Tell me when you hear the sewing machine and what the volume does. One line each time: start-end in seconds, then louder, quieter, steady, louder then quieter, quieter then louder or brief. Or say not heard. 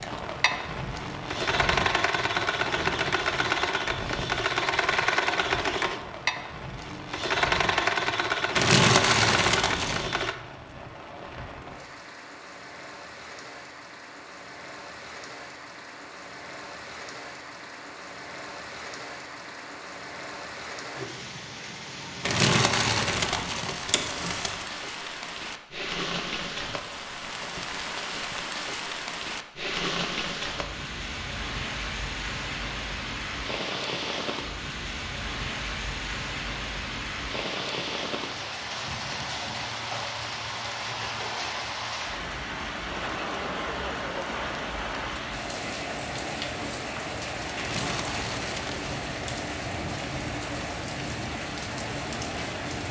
0.0-10.3 steady.